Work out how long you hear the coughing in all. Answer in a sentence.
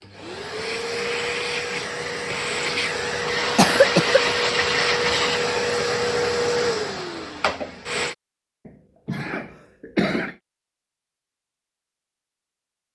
You can hear the coughing for 2 seconds altogether.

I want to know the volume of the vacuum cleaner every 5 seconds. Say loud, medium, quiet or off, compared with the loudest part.
loud, loud, off.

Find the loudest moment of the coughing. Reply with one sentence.
The volume of the coughing peaks at 4 seconds.